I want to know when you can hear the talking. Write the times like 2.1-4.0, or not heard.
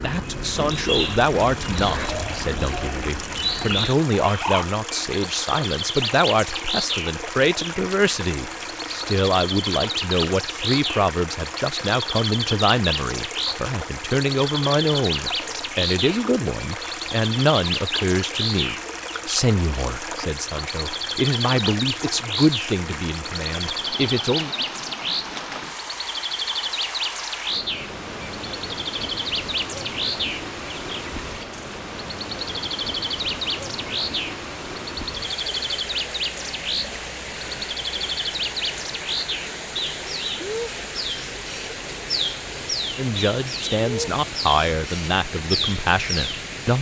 0.0-24.6, 43.0-46.7.